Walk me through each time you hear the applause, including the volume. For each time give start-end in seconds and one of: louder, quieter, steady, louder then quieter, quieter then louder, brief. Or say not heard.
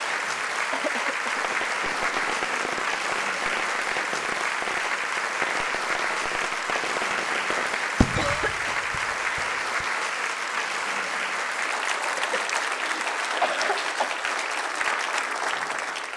0.0-16.1 steady.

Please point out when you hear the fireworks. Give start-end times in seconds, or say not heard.
1.4-9.8.